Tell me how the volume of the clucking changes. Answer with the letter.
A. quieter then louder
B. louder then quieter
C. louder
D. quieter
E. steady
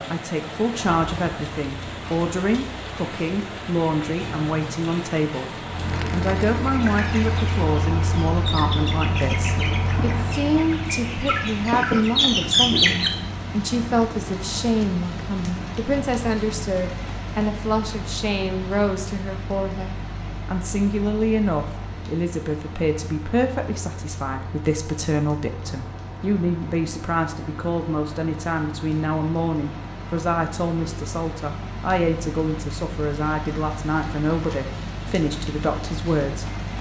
C.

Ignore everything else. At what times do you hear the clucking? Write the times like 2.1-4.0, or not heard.
6.7-13.1.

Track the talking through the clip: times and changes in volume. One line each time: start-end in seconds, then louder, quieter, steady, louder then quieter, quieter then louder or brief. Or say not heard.
0.1-5.5 steady
6.1-36.7 steady.